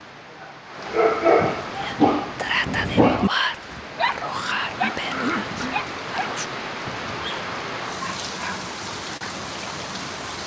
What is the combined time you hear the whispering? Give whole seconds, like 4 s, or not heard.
5 s.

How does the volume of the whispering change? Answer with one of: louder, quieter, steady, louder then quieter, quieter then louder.
quieter.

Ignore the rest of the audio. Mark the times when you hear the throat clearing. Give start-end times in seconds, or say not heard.
4.7-5.8.